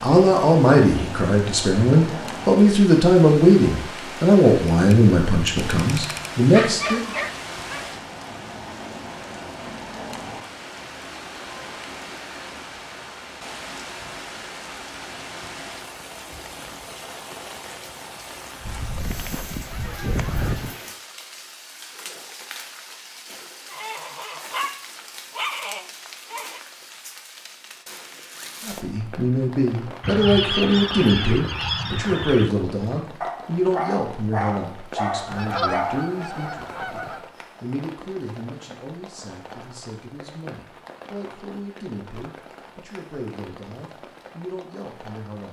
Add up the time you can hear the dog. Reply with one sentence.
You can hear the dog for 7 seconds altogether.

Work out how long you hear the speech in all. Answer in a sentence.
You can hear the speech for 24 seconds altogether.